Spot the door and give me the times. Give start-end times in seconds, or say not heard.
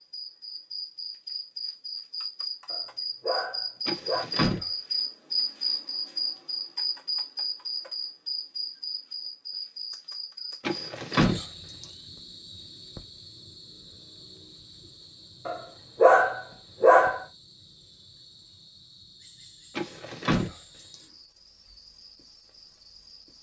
3.9-4.7, 10.7-11.8, 19.8-20.9.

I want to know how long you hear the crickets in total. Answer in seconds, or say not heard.
23 s.